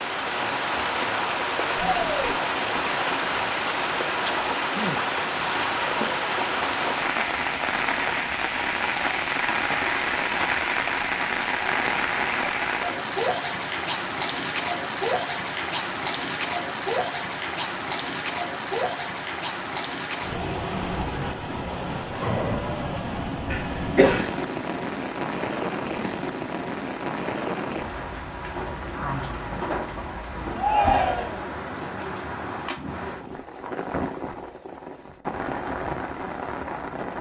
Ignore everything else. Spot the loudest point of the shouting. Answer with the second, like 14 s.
31 s.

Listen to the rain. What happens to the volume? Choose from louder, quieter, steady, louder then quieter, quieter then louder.
quieter.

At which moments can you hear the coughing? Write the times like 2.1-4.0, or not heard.
23.5-24.4.